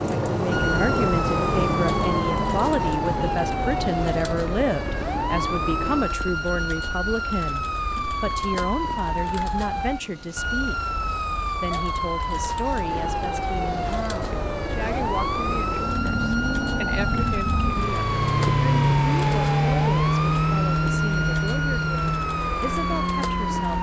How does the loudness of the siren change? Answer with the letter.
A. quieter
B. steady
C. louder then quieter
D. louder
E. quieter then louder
B.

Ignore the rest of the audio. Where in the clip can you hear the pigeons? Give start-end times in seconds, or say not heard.
not heard.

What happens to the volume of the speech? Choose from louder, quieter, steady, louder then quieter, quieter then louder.
quieter.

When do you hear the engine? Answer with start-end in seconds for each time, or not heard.
0.0-6.2, 12.7-23.7.